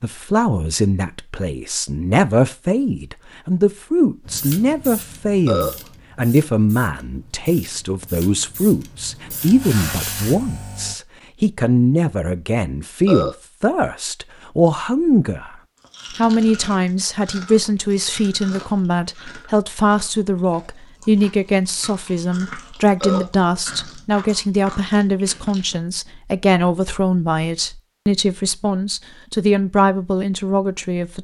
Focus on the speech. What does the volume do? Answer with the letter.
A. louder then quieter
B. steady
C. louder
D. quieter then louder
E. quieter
B.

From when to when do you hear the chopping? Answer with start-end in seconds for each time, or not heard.
not heard.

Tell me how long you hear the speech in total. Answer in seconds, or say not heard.
31 s.